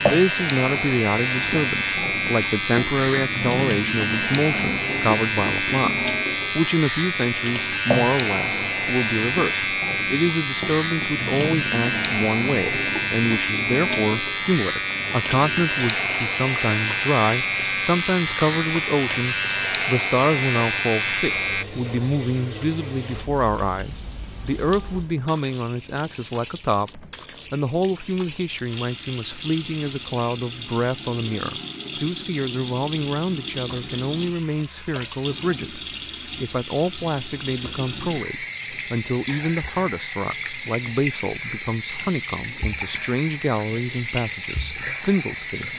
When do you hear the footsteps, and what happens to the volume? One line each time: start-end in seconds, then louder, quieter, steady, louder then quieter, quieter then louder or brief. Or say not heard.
not heard.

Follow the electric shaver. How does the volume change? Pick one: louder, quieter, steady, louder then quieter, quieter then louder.
steady.